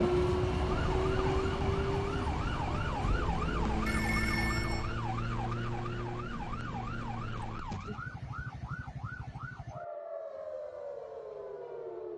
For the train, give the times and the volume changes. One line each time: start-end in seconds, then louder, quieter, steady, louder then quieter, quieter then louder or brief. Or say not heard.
0.0-4.9 quieter.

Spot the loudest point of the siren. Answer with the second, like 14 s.
4 s.